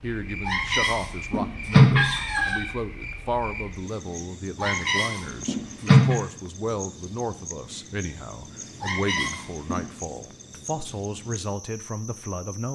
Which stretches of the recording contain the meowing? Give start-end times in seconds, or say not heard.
0.5-2.6, 4.6-6.2, 8.8-9.9.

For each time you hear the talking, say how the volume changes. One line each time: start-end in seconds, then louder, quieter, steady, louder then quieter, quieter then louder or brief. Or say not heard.
0.0-12.6 steady.